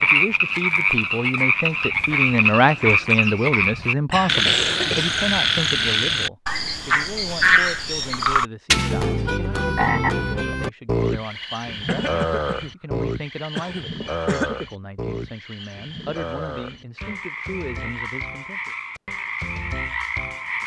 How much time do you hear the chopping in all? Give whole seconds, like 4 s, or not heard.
not heard.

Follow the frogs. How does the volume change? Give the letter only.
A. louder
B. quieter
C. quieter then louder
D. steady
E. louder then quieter
B.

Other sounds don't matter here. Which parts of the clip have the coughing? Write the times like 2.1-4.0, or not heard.
4.1-5.2, 11.8-14.5.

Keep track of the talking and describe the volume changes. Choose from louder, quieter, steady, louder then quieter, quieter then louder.
quieter.